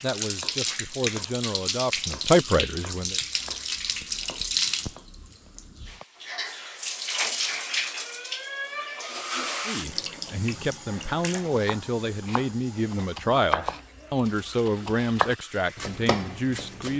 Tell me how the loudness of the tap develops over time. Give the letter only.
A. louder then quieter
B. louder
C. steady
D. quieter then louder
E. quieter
E.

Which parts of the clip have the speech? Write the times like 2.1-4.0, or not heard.
0.0-3.2, 9.7-16.9.